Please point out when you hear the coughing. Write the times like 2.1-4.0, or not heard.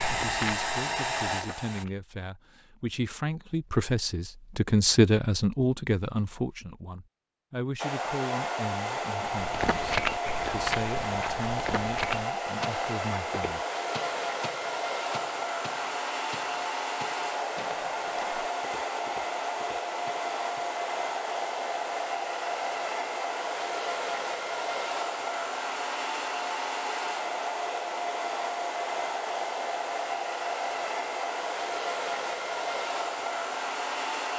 not heard.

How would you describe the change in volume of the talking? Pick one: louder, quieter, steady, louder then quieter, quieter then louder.
louder then quieter.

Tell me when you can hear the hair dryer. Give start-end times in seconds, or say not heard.
0.0-1.9, 7.8-34.3.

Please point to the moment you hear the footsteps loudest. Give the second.
10 s.